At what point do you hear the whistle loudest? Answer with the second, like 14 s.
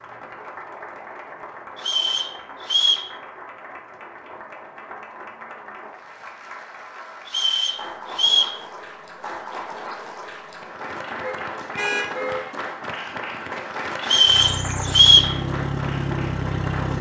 15 s.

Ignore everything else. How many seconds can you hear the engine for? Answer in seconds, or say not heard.
3 s.